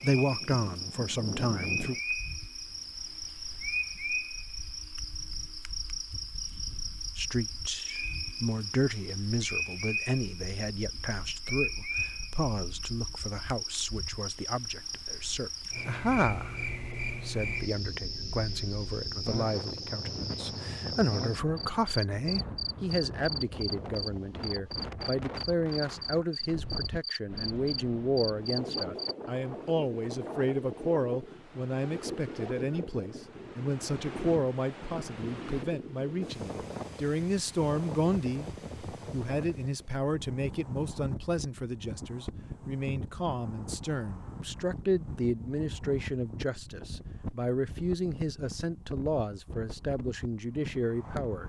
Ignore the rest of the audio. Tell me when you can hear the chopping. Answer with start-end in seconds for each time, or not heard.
not heard.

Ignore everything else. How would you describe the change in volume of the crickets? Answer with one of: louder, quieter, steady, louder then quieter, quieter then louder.
steady.